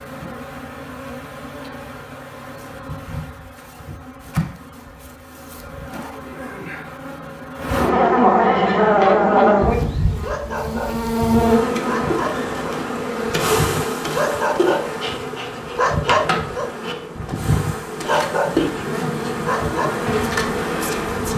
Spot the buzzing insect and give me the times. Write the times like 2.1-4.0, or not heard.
0.0-21.3.